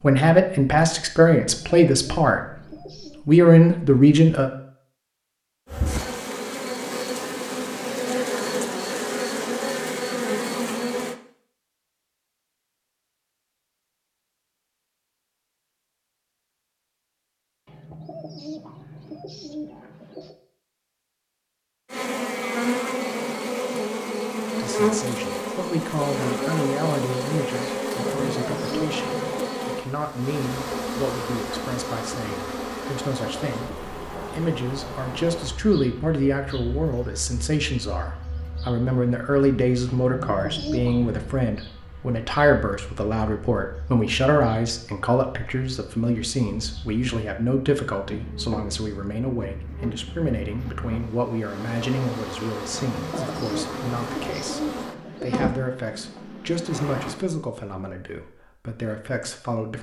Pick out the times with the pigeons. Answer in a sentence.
The pigeons can be heard from 1.4 to 3.2 s, from 17.6 to 20.4 s, from 28.1 to 29.6 s, from 39.9 to 41.4 s and from 52.8 to 55.5 s.